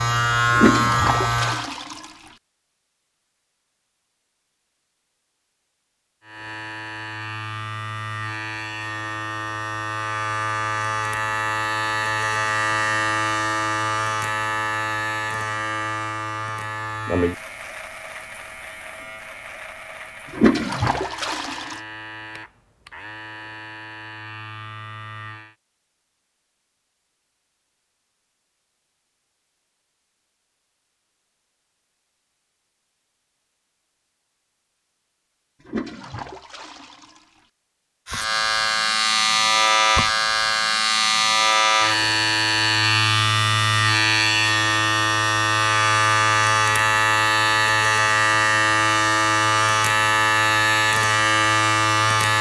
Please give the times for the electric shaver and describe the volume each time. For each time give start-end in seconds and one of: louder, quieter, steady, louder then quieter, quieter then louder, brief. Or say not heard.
0.0-1.7 brief
6.2-25.6 louder then quieter
38.0-52.3 steady.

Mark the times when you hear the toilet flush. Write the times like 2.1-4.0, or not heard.
0.5-2.1, 20.3-21.8, 35.6-37.2.